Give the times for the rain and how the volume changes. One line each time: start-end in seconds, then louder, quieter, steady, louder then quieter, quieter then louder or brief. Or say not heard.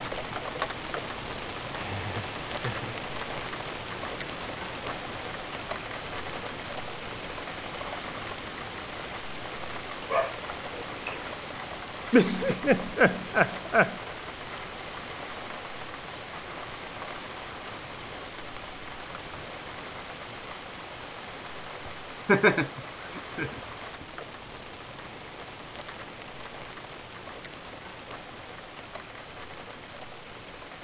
0.0-30.7 quieter.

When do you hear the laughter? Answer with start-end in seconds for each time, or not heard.
1.9-3.0, 12.1-13.9, 21.9-24.1.